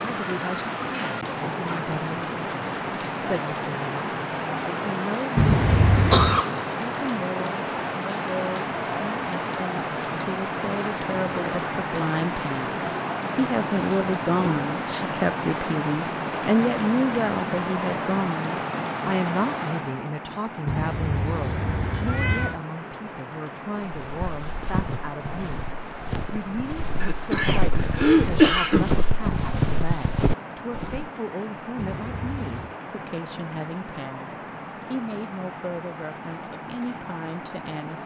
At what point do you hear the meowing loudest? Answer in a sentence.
The volume of the meowing peaks at 6 seconds.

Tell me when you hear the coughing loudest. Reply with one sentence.
The volume of the coughing peaks at 28 seconds.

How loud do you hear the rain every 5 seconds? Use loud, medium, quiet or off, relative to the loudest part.
loud, loud, loud, loud, medium, medium, medium, medium.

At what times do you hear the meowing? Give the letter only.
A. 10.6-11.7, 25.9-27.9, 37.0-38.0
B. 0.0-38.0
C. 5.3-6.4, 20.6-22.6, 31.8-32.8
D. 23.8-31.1
C.